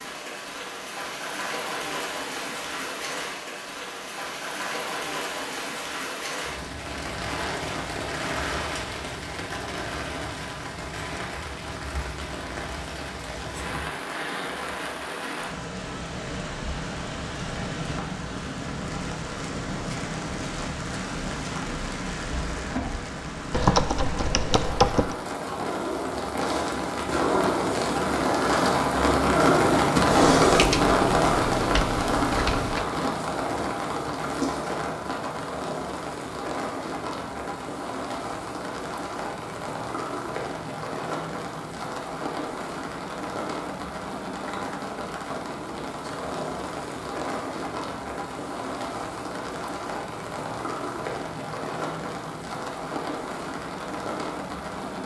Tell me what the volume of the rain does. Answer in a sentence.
The volume of the rain goes up, then down.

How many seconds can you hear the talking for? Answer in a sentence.
The talking can't be heard in this clip.